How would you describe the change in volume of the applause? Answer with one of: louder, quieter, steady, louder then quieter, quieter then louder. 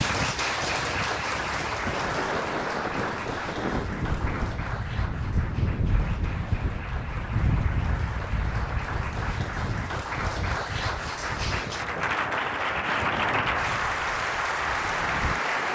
quieter then louder.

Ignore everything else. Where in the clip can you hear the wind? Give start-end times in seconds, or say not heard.
0.0-15.7.